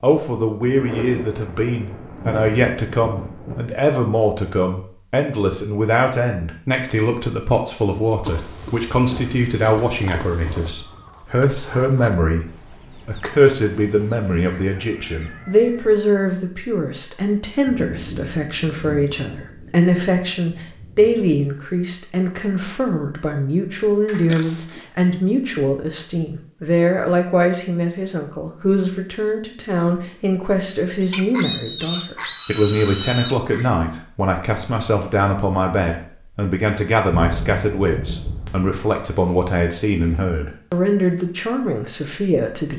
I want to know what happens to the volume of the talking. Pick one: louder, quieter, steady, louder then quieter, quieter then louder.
steady.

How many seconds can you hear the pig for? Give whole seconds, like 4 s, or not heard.
6 s.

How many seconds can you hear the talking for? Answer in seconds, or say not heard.
43 s.